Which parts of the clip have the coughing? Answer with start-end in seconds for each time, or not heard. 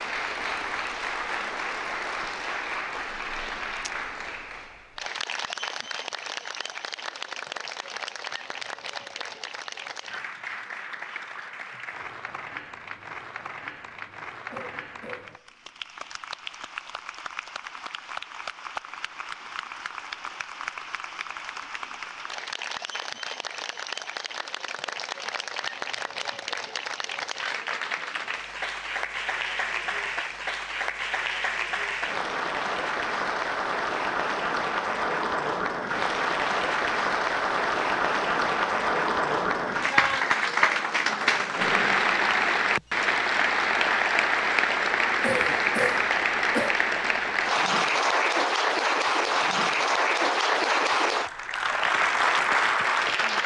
14.5-15.5, 45.2-46.8.